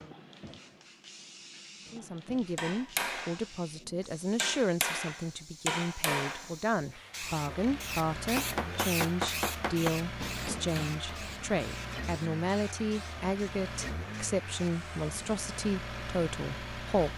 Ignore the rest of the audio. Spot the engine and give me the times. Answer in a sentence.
You can hear the engine from 7.2 to 17.1 s.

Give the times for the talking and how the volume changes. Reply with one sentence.
The talking can be heard from 1.9 to 17.1 s, at a steady volume.